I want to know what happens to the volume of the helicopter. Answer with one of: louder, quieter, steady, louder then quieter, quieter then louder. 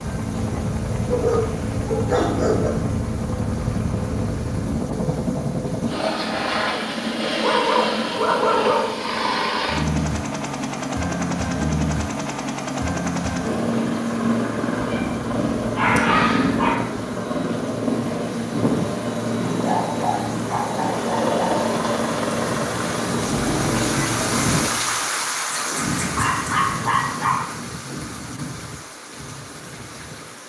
steady.